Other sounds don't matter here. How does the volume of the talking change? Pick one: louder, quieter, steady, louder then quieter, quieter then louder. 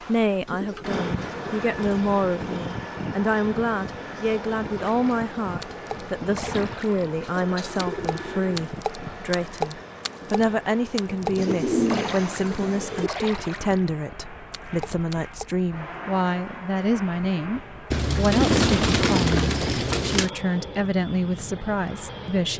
steady.